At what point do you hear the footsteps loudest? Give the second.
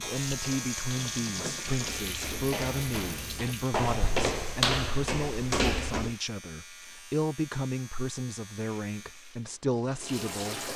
5 s.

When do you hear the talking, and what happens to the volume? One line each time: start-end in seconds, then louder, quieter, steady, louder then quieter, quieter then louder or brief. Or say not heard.
0.0-10.7 steady.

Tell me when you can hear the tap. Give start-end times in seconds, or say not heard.
0.1-3.8, 8.9-10.7.